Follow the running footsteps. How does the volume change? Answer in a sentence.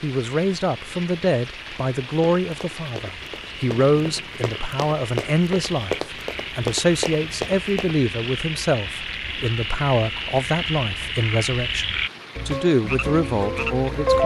The volume of the running footsteps goes up.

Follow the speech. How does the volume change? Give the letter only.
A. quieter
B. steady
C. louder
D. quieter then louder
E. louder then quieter
B.